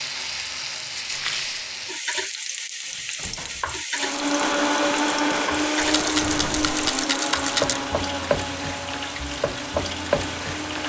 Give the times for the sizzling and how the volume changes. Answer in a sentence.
The sizzling can be heard from 0.0 to 10.8 s, at a steady volume.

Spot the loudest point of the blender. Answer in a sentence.
The loudest moment of the blender is at 5 seconds.